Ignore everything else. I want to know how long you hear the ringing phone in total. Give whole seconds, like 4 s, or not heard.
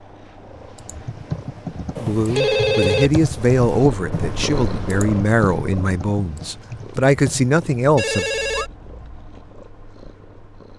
2 s.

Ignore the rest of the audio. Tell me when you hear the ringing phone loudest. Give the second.
3 s.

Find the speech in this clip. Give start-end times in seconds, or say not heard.
2.0-8.3.